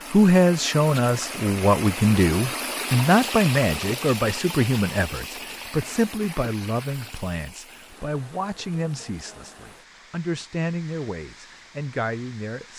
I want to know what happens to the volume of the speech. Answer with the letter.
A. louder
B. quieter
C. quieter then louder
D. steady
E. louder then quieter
B.